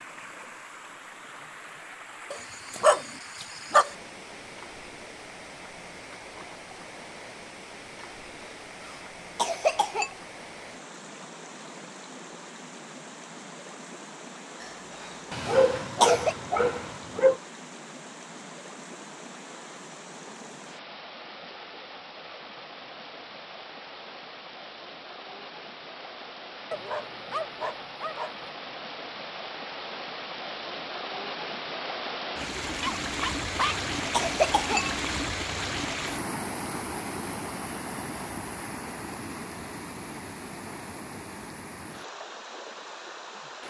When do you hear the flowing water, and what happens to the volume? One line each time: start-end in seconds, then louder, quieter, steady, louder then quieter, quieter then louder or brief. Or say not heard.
0.0-43.6 louder.